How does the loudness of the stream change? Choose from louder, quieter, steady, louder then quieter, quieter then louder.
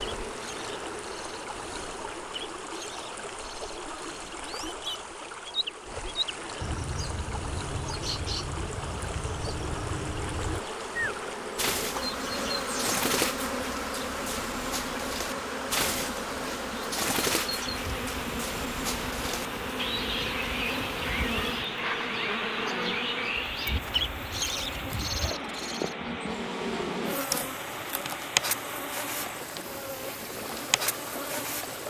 steady.